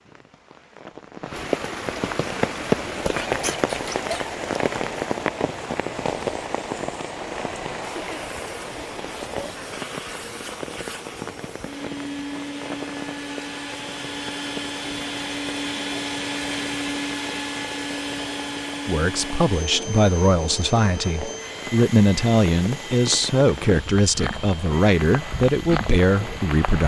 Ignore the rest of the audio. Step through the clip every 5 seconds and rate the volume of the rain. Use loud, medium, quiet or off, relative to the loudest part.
loud, loud, medium, quiet, medium, medium.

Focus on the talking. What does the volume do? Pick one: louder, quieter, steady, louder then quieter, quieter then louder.
steady.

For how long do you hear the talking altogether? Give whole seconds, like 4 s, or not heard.
8 s.